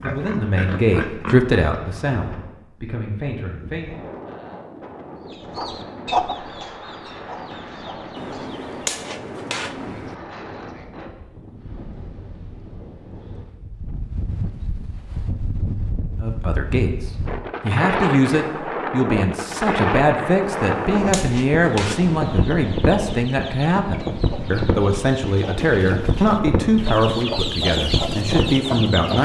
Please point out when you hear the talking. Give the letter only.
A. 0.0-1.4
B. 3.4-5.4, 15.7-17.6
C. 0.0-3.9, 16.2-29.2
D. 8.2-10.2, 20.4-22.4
C.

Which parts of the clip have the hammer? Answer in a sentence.
The hammer can be heard from 8.2 to 10.2 s and from 20.4 to 22.4 s.